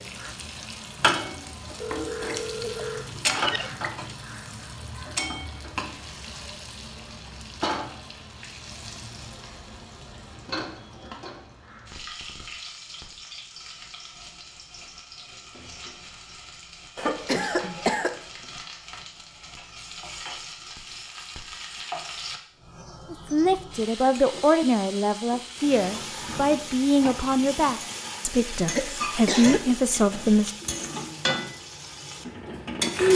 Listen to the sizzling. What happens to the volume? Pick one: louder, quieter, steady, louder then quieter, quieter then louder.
quieter then louder.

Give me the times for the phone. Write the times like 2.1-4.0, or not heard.
1.8-3.0.